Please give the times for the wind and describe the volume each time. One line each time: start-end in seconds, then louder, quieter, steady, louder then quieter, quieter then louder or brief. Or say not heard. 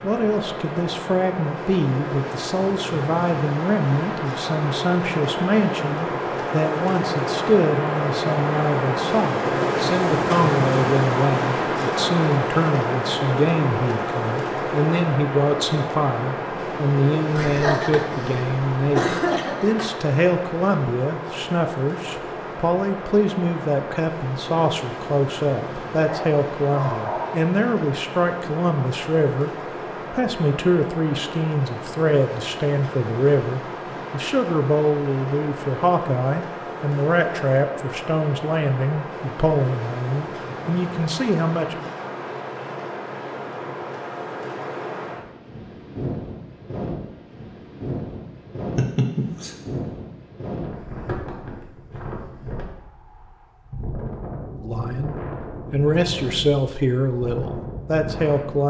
0.0-58.6 quieter.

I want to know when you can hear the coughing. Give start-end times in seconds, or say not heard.
17.4-19.9, 48.8-49.5.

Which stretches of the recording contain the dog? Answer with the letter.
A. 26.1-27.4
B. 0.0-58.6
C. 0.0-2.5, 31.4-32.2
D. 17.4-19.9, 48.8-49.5
A.